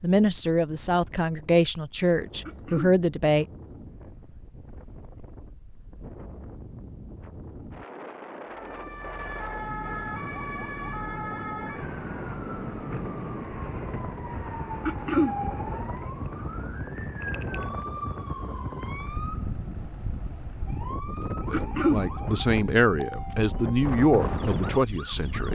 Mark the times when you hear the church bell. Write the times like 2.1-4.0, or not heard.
not heard.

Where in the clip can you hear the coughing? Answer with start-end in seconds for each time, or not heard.
2.5-3.0, 14.8-15.3, 21.5-22.1.